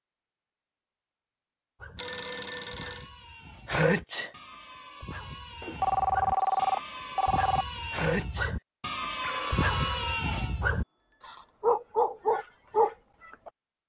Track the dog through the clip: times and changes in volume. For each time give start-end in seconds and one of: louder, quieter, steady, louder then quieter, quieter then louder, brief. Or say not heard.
1.8-13.5 louder.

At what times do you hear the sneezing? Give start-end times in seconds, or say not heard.
3.6-4.3, 7.9-8.6.